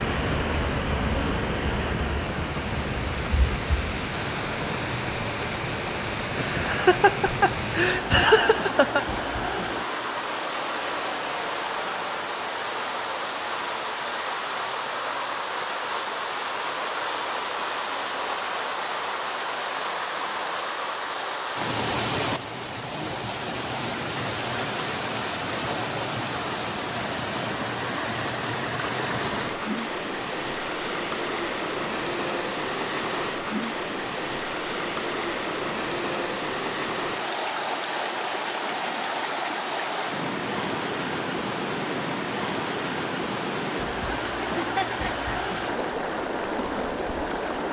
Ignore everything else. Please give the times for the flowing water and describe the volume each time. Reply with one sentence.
You can hear the flowing water from 0.0 to 47.6 s, at a steady volume.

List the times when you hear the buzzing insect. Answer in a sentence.
The buzzing insect can be heard from 0.0 to 4.0 s.